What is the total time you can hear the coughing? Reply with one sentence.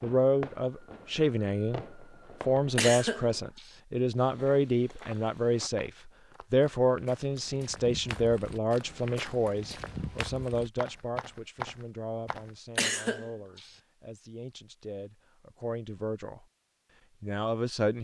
You can hear the coughing for 2 seconds altogether.